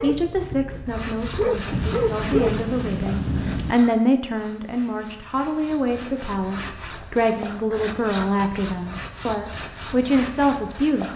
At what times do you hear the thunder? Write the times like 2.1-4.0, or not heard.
1.7-3.8.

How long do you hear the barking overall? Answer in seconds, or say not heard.
3 s.